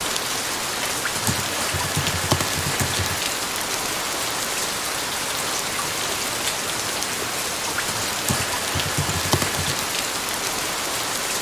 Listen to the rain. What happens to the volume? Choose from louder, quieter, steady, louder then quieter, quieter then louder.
steady.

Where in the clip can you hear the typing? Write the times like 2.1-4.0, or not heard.
1.2-3.3, 8.2-9.8.